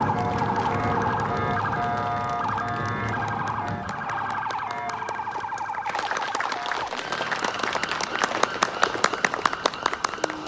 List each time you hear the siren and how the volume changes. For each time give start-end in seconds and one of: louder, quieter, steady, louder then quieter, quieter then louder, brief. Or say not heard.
0.0-10.4 quieter.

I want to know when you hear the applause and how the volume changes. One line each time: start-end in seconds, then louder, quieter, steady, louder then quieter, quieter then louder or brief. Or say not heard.
0.0-10.4 louder.